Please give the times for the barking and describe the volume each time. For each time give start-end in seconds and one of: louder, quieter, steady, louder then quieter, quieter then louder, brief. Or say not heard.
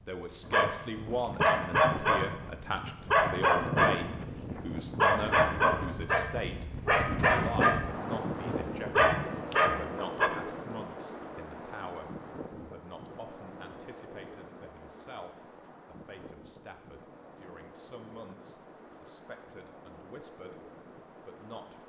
0.5-10.3 steady.